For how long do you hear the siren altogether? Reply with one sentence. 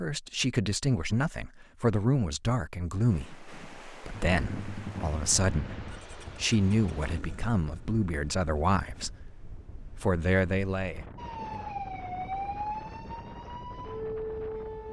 The siren can be heard for 4 seconds in total.